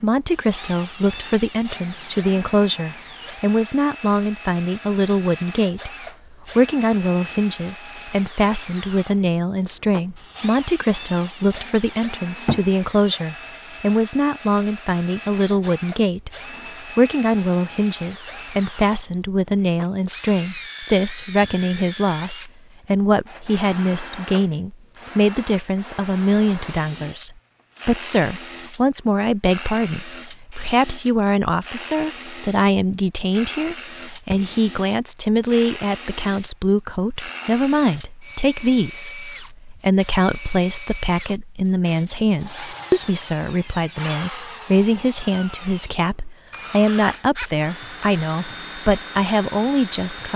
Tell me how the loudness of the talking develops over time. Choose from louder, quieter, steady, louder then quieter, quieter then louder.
steady.